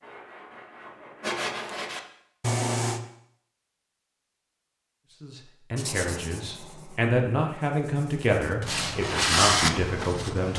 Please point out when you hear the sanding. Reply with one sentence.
The sanding can be heard from 0.0 to 3.0 s and from 5.8 to 10.5 s.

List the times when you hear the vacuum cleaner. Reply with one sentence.
The vacuum cleaner can't be heard in this clip.